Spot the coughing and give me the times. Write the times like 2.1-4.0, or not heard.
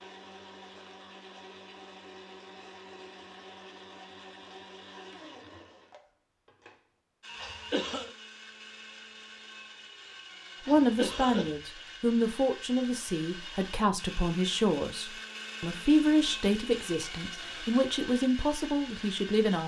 7.3-8.1, 10.7-11.6.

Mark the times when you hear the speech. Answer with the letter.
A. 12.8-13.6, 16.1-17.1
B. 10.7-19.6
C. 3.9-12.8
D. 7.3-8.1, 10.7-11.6
B.